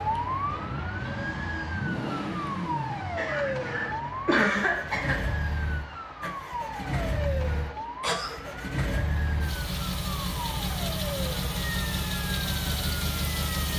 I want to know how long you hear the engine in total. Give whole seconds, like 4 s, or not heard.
14 s.